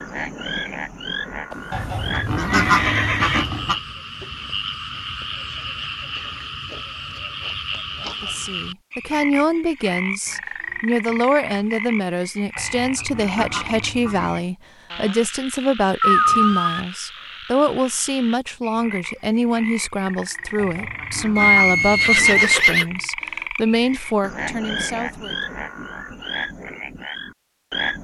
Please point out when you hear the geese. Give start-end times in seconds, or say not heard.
1.7-3.8, 12.6-14.4, 20.6-22.4.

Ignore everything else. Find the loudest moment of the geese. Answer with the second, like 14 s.
3 s.